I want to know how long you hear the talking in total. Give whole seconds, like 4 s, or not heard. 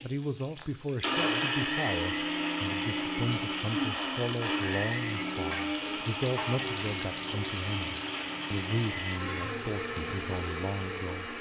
11 s.